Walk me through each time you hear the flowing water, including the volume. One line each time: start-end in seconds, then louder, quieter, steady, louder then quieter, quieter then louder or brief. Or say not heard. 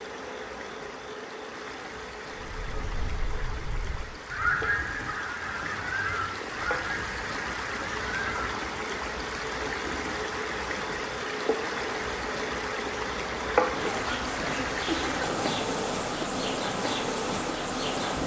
0.0-18.2 louder.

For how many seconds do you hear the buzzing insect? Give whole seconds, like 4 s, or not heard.
18 s.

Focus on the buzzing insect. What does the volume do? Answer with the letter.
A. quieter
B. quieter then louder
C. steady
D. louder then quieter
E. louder
E.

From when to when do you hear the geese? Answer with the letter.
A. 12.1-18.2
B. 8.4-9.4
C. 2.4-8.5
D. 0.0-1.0
C.